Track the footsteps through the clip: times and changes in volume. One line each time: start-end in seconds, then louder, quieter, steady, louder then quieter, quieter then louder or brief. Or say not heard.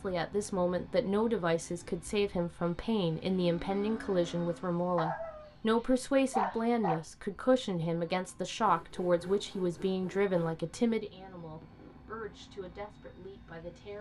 not heard.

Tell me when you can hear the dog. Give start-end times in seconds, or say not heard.
5.0-7.0.